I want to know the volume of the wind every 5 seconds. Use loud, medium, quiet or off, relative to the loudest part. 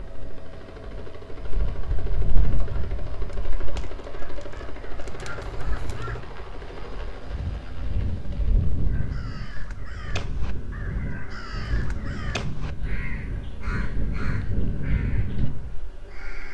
medium, loud, loud, loud.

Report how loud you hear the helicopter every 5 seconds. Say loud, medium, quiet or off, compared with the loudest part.
loud, loud, medium, medium.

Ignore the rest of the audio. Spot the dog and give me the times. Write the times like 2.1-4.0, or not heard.
not heard.